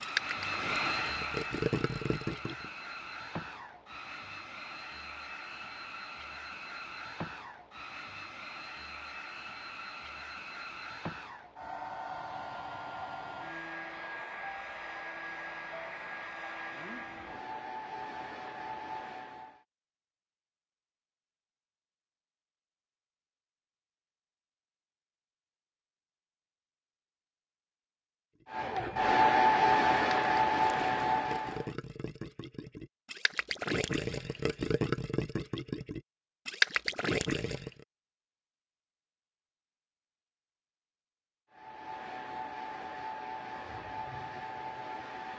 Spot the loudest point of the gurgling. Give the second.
37 s.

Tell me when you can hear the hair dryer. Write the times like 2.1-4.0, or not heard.
0.0-19.6, 28.5-31.8, 41.5-45.3.